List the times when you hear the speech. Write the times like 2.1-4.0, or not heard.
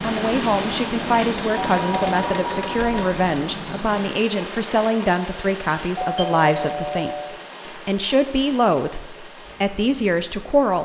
0.0-10.8.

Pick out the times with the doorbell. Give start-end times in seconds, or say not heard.
1.5-3.2, 6.0-7.4.